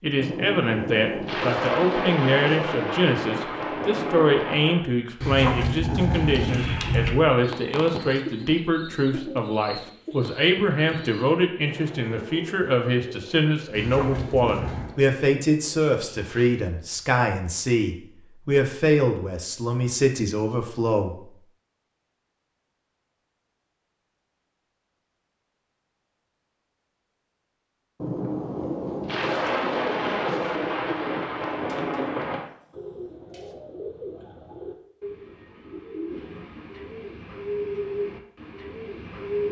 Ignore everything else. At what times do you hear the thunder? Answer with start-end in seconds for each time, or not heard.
0.1-4.8, 28.0-32.5.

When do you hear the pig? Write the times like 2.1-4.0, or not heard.
not heard.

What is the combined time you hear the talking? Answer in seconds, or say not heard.
21 s.